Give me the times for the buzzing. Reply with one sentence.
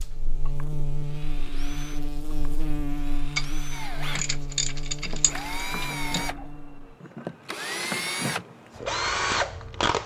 You can hear the buzzing from 0.0 to 7.0 s.